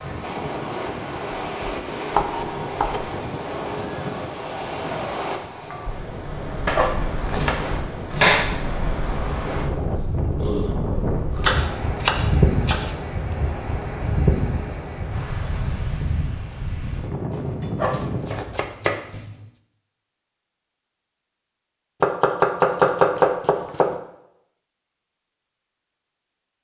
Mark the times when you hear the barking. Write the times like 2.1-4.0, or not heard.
6.7-7.6, 17.8-18.7.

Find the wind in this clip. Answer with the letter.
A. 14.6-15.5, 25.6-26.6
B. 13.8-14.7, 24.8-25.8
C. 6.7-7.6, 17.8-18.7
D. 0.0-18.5
D.